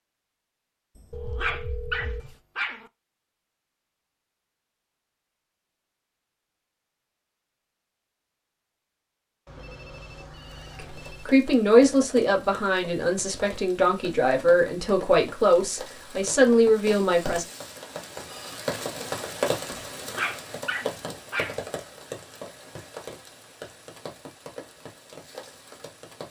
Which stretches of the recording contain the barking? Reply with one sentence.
You can hear the barking from 0.9 to 2.9 s and from 19.9 to 21.6 s.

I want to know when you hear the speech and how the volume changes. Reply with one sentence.
The speech can be heard from 10.8 to 17.4 s, getting quieter then louder.